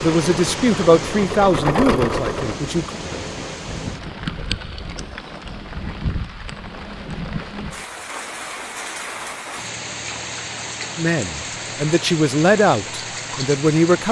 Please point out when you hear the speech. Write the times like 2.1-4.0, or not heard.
0.0-3.0, 10.9-14.0.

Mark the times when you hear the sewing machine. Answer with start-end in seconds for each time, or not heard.
0.2-2.6.